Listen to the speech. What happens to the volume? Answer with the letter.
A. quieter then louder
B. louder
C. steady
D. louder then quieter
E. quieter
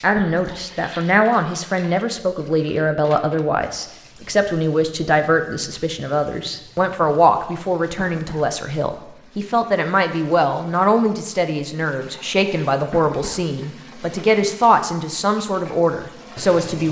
C.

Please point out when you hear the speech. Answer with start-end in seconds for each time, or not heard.
0.0-16.8.